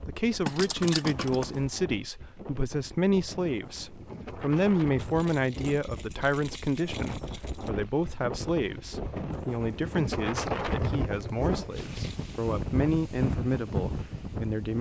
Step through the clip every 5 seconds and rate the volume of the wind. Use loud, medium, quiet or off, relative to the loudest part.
medium, medium, loud.